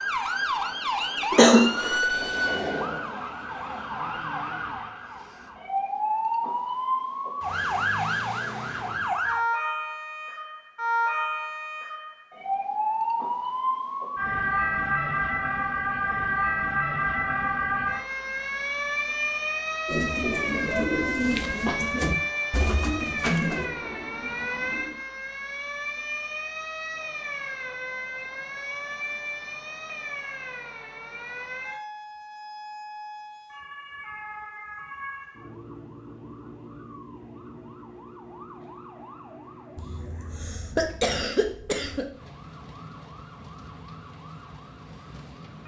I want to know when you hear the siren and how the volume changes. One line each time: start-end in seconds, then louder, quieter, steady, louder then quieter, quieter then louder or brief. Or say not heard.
0.0-45.6 quieter.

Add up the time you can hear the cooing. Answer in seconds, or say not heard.
5 s.